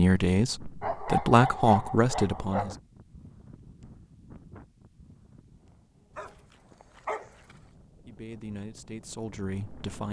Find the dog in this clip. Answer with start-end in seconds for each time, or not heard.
0.8-2.8, 6.2-7.5.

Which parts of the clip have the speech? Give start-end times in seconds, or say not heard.
0.0-2.8, 8.1-10.0.